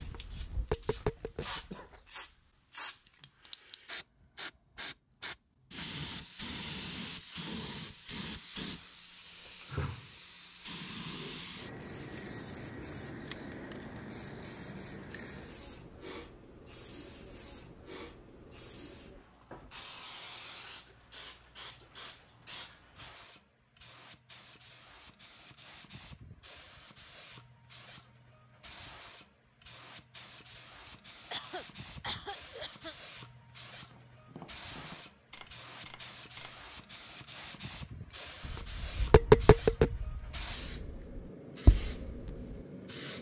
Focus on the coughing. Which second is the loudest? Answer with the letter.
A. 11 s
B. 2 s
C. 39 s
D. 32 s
D.